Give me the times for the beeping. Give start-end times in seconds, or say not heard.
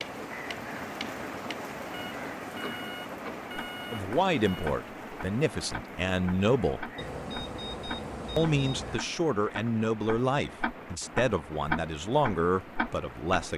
1.9-4.7, 7.0-9.0.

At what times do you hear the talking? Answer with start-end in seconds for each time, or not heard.
3.9-6.9, 8.3-13.5.